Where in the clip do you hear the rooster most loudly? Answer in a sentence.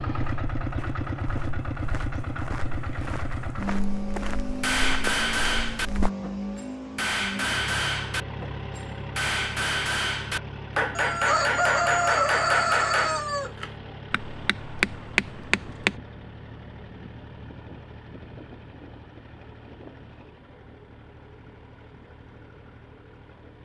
The volume of the rooster peaks at 12 seconds.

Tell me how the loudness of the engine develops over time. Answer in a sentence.
The loudness of the engine goes down.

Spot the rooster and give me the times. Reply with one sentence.
The rooster can be heard from 10.9 to 13.5 s.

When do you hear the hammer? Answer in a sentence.
You can hear the hammer from 4.6 to 16.0 s.